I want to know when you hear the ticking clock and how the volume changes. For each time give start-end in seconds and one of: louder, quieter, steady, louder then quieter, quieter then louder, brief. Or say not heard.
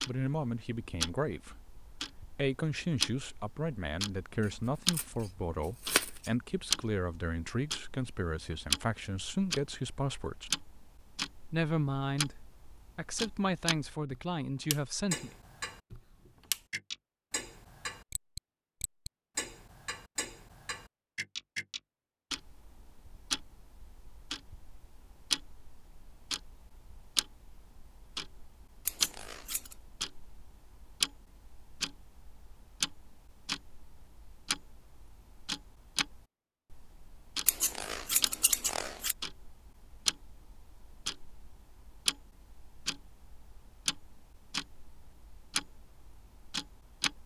0.0-47.2 steady.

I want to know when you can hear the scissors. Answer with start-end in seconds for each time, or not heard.
4.4-6.3, 28.9-29.8, 37.5-39.1.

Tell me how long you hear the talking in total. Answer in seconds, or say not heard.
14 s.